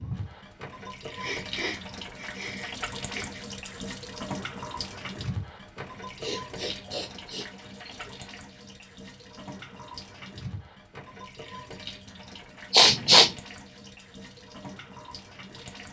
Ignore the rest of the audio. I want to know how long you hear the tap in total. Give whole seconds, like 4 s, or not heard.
16 s.